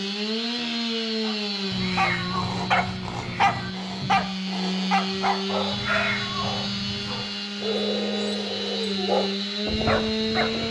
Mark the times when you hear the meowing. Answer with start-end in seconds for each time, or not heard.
1.7-3.7, 5.7-7.3.